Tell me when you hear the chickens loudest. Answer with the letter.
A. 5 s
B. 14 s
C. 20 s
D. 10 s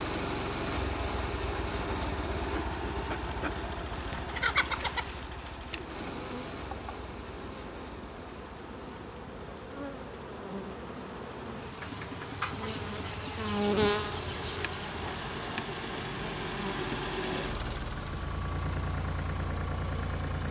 A.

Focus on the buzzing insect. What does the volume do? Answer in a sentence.
The volume of the buzzing insect goes up, then down.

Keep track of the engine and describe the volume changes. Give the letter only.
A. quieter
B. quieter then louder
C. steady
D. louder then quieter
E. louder
B.